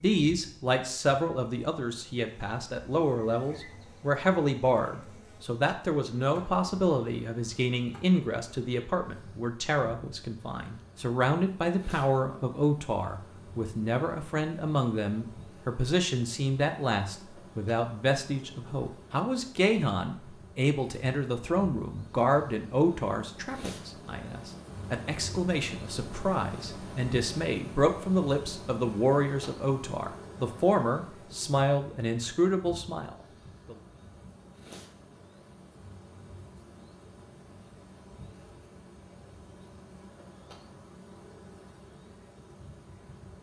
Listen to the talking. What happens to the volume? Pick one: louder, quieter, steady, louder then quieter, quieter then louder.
steady.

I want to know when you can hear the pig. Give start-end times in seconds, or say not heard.
not heard.